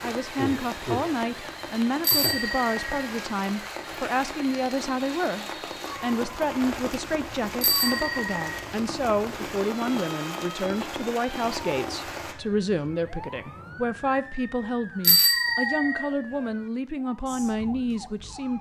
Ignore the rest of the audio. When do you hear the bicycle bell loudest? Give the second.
15 s.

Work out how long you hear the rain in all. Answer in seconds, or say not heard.
12 s.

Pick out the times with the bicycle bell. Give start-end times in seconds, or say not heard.
2.0-2.8, 7.6-8.4, 15.0-16.1.